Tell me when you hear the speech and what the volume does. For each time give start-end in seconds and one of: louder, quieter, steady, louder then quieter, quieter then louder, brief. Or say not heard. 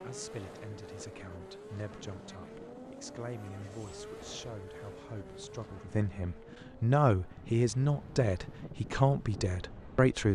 0.0-10.2 louder.